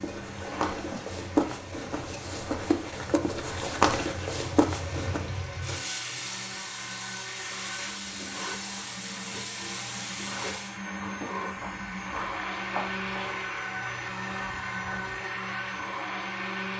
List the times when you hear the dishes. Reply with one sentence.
The dishes can't be heard in this clip.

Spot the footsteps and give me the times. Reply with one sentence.
The footsteps can be heard from 0.0 to 5.2 s and from 11.2 to 15.2 s.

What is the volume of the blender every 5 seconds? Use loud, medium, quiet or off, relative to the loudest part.
medium, medium, loud, loud.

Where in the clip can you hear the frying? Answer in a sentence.
You can hear the frying from 0.0 to 10.8 s.